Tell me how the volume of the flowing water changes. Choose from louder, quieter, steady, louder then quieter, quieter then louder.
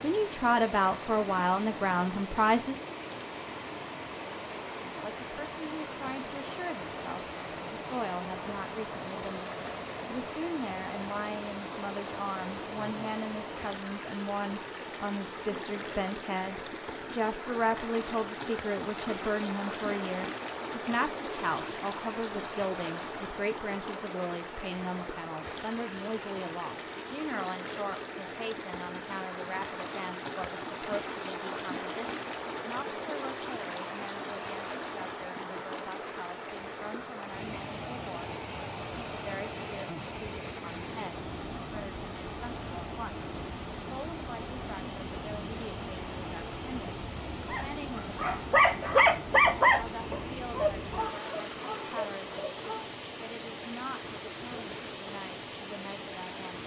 steady.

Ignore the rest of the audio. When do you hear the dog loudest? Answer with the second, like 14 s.
50 s.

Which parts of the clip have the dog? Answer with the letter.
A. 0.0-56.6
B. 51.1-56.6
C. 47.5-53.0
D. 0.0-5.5
C.